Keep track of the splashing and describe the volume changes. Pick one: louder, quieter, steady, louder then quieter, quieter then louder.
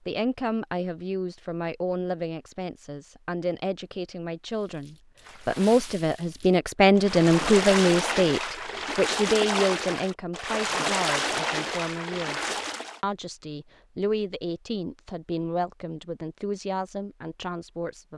louder.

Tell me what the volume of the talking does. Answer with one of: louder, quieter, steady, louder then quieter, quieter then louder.
louder then quieter.